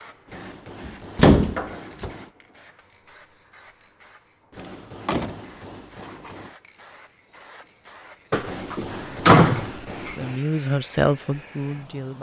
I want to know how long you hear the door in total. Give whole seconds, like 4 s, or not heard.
5 s.